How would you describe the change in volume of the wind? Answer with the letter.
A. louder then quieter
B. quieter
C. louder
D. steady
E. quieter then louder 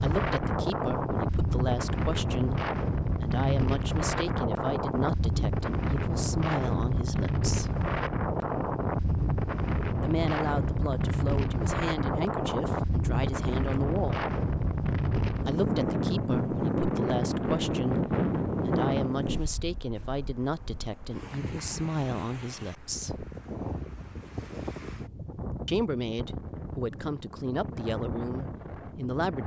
B.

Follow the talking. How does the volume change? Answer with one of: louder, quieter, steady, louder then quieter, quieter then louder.
steady.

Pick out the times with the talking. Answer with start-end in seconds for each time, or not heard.
0.0-7.8, 10.0-14.2, 15.4-23.2, 25.6-29.4.